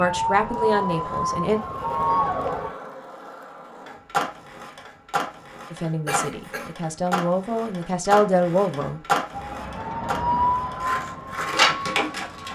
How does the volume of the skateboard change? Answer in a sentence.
The loudness of the skateboard goes up.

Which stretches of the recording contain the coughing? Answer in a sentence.
The coughing can be heard from 6.0 to 6.8 s.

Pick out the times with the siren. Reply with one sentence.
You can hear the siren from 0.0 to 2.8 s and from 9.3 to 12.5 s.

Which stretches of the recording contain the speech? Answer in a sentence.
The speech can be heard from 0.0 to 1.6 s and from 5.7 to 9.0 s.